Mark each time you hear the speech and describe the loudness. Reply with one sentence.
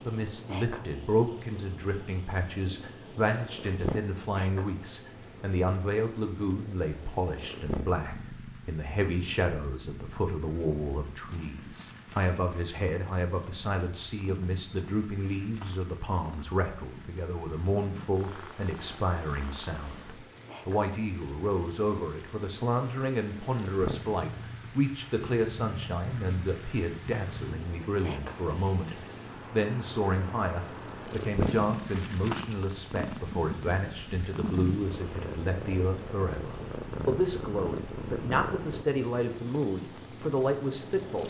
You can hear the speech from 0.0 to 41.2 s, at a steady volume.